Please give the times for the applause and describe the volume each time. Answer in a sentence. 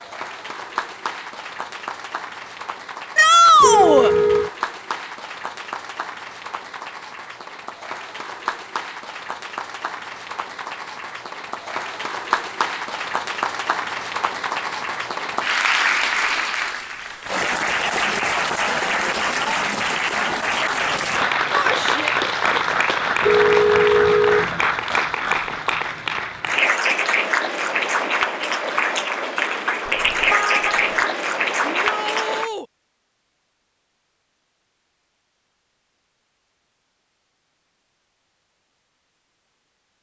You can hear the applause from 0.0 to 32.5 s, getting louder.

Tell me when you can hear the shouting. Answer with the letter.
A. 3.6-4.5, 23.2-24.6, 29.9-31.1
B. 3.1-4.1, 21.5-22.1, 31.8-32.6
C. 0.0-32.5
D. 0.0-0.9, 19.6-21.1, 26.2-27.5
B.